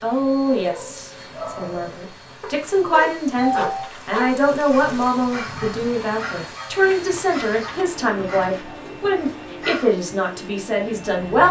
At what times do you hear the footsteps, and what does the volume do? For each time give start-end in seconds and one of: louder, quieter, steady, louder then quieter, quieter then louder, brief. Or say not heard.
not heard.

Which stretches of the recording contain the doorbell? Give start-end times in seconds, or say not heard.
2.5-3.9, 8.2-9.1.